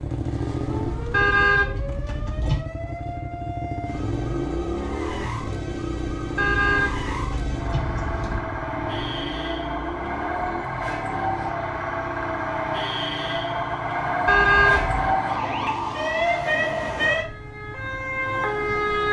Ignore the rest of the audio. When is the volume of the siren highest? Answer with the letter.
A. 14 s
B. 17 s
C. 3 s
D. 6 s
B.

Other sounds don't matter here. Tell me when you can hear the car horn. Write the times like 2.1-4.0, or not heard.
1.1-2.6, 6.3-8.4, 14.2-15.1.